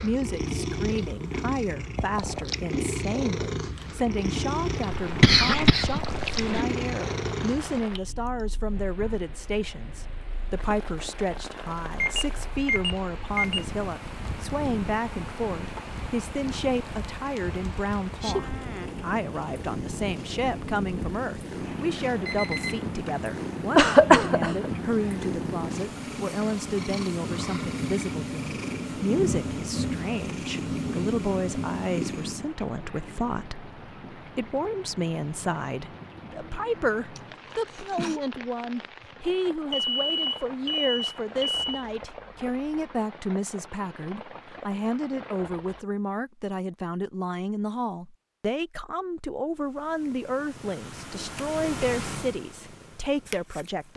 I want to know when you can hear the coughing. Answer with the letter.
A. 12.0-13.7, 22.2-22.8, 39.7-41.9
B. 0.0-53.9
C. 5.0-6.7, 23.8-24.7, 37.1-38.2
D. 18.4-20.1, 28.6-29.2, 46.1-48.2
C.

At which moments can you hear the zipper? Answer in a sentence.
The zipper can't be heard in this clip.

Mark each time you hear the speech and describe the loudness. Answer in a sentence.
You can hear the speech from 0.0 to 53.9 s, at a steady volume.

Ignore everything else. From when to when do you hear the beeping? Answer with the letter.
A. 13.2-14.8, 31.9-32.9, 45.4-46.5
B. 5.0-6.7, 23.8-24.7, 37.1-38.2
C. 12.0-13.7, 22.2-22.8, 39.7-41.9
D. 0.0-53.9
C.